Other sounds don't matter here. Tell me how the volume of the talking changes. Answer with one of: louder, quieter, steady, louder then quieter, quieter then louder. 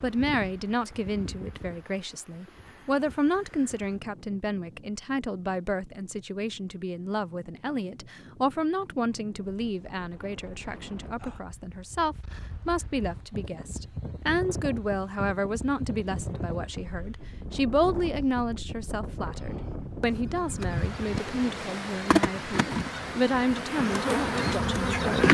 steady.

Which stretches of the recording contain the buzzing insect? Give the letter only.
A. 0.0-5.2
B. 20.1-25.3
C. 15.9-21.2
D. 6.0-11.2
B.